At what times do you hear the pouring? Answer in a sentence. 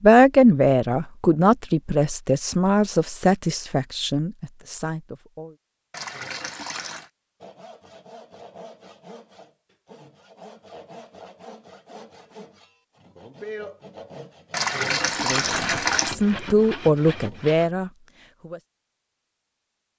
You can hear the pouring from 5.9 to 7.1 s and from 14.5 to 16.1 s.